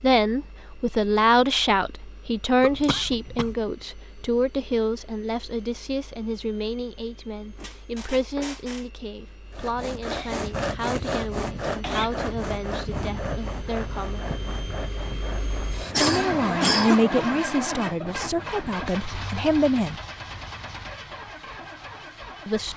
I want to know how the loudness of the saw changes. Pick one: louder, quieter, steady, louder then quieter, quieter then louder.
quieter.